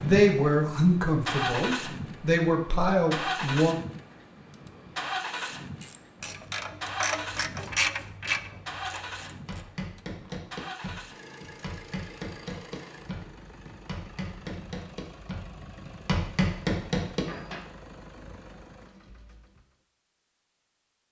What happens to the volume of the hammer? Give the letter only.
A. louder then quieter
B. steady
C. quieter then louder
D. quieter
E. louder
E.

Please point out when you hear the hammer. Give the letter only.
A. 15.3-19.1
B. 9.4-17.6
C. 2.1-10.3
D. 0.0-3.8
B.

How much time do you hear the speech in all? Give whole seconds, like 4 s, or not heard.
4 s.